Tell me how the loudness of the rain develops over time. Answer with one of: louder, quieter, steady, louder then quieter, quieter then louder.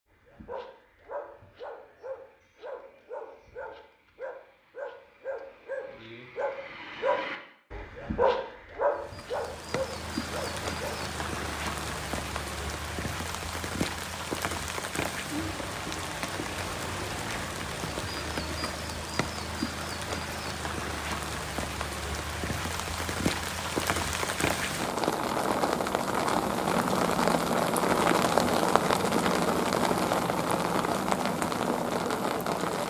louder.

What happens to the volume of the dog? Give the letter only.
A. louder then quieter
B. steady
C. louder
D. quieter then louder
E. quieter
C.